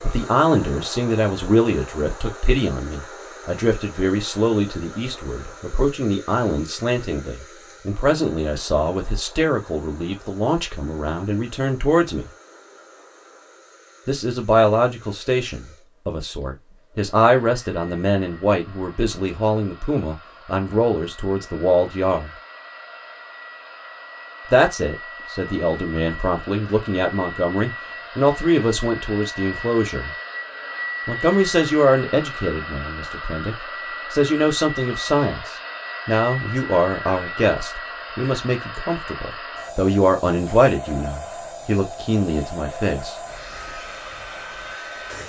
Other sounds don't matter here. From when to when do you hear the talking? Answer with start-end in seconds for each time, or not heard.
0.0-12.3, 14.1-22.3, 24.5-30.1, 31.1-43.1.